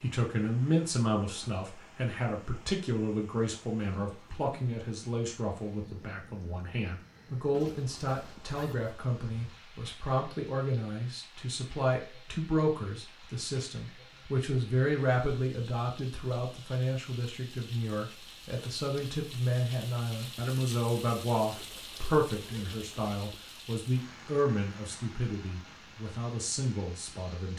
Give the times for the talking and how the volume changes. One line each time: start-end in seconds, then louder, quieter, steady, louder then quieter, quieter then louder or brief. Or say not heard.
0.0-27.5 steady.